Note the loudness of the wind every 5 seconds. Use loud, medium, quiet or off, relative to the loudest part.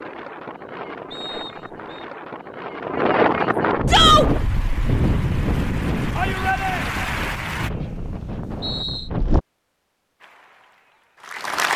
loud, loud, off.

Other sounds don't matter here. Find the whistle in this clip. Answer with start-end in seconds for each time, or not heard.
1.1-2.0, 7.5-9.1.